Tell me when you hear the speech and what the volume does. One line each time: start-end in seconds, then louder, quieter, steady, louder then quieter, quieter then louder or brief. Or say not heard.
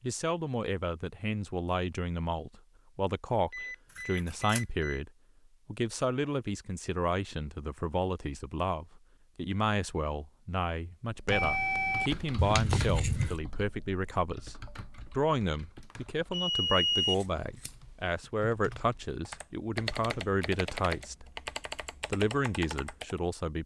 0.0-21.2 steady
22.1-23.6 brief.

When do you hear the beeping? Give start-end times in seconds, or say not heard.
3.5-5.0, 11.3-12.4, 15.9-17.1.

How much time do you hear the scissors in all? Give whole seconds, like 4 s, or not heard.
3 s.